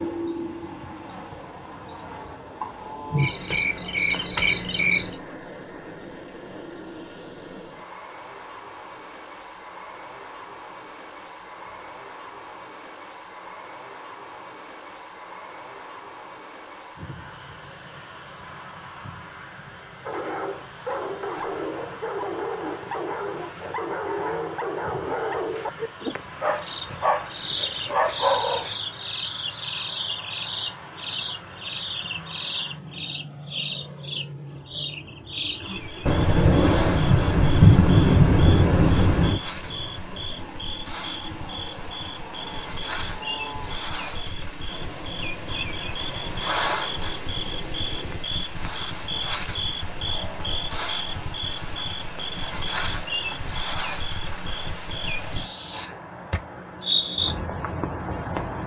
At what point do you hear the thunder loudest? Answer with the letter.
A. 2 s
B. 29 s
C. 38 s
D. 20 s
C.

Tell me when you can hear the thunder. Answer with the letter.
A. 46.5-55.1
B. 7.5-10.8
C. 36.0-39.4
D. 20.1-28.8
C.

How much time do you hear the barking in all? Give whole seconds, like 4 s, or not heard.
9 s.